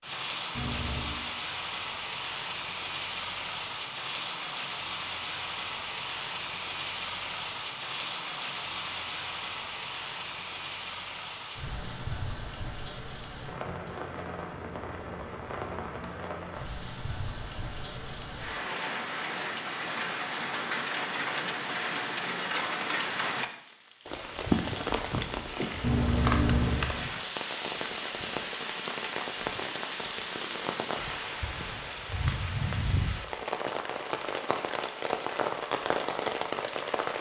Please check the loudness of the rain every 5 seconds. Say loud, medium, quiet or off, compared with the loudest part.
loud, loud, medium, medium, loud, loud, loud, loud.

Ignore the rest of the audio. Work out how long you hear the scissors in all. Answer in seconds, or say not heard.
3 s.